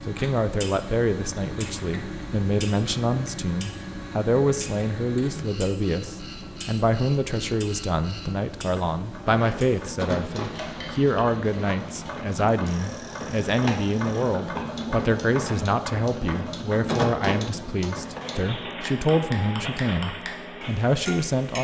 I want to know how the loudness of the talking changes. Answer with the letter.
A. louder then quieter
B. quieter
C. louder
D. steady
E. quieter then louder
D.